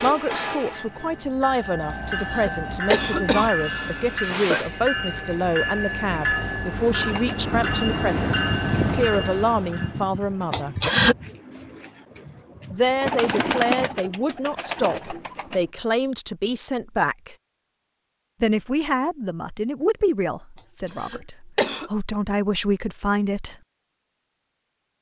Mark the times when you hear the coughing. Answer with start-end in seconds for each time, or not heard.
1.9-4.6, 10.5-11.2, 20.6-21.9.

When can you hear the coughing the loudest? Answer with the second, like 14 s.
11 s.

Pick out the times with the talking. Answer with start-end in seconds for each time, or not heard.
0.0-10.8, 12.7-17.4, 18.4-23.6.